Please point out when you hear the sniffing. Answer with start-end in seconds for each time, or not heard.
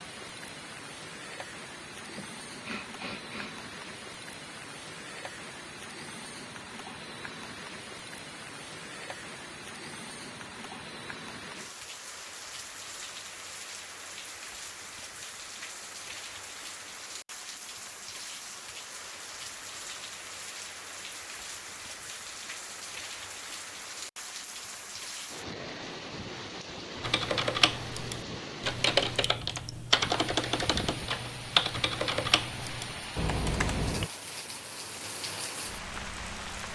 2.0-3.5.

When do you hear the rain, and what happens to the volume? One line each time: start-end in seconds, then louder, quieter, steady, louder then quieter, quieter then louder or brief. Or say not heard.
0.0-36.7 steady.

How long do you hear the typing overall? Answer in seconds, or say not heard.
7 s.